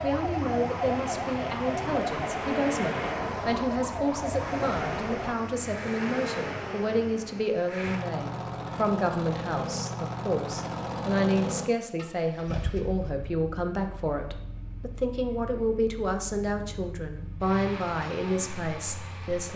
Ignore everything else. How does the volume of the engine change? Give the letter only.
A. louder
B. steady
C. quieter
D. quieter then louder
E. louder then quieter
C.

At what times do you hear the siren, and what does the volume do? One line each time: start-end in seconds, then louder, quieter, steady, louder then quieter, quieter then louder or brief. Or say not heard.
0.0-5.3 steady.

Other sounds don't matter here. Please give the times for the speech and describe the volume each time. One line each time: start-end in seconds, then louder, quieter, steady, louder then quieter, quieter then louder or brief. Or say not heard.
0.0-19.5 steady.